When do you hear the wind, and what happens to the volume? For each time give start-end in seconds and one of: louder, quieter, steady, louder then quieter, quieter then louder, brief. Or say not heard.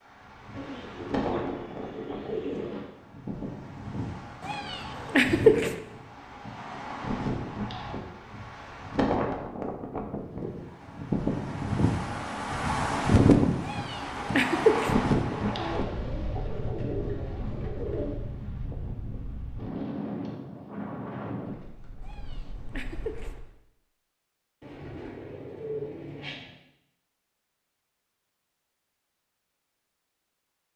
0.0-23.5 louder then quieter.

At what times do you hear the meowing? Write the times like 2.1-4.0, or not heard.
4.4-5.7, 13.6-14.9, 22.0-23.3.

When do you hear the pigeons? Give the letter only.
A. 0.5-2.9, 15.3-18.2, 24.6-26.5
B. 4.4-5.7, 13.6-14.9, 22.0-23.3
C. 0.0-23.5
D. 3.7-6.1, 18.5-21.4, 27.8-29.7
A.